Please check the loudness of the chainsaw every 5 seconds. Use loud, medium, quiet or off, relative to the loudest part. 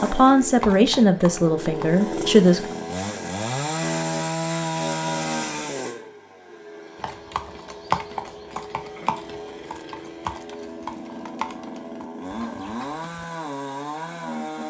loud, medium, medium.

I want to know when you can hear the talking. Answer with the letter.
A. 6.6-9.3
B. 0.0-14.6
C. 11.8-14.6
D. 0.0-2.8
D.